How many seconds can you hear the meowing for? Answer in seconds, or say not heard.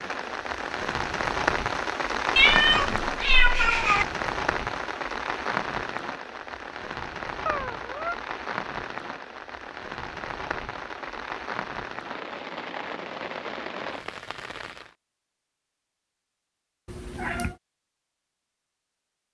3 s.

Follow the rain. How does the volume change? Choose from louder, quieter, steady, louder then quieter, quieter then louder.
quieter.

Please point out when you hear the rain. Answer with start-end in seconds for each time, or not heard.
0.0-14.9.